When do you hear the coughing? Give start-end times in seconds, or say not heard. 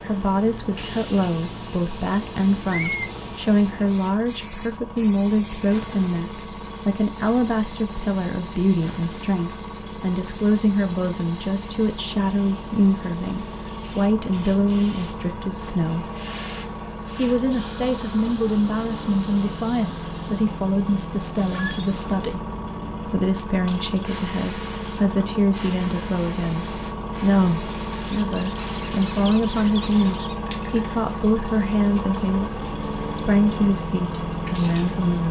not heard.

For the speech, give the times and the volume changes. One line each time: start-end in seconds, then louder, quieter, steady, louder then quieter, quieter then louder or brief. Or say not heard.
0.0-16.1 steady
17.1-22.4 steady
23.1-35.2 steady.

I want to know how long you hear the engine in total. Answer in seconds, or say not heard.
35 s.